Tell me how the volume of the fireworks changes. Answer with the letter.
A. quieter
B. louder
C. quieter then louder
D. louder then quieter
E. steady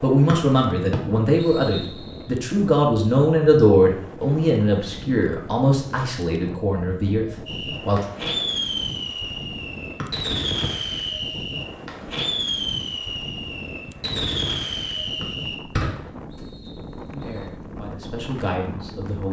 E.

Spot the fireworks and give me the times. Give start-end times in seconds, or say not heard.
7.5-16.4.